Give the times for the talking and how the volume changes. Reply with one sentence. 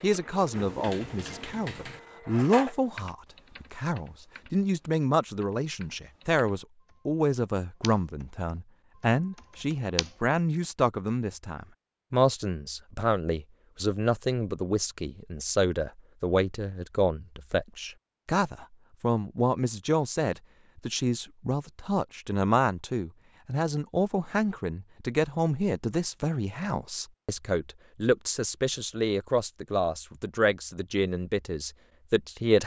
The talking can be heard from 0.0 to 32.6 s, at a steady volume.